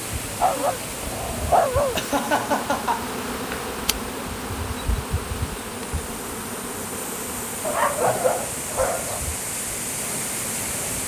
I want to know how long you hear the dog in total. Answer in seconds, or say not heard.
3 s.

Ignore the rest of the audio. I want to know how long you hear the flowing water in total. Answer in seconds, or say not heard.
11 s.